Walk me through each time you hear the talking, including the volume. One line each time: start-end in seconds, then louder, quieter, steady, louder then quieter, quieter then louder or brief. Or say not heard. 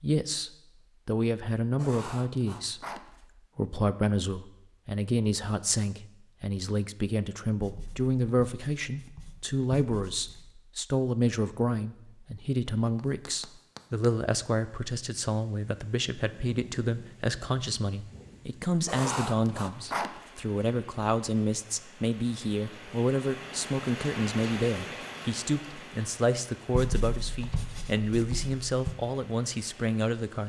0.0-2.8 brief
3.5-30.4 steady.